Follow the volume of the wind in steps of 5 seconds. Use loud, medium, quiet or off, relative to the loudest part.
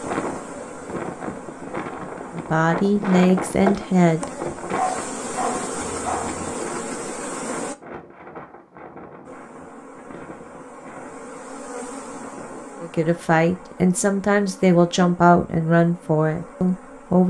loud, medium, quiet, off.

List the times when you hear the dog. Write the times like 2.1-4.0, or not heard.
4.7-6.5.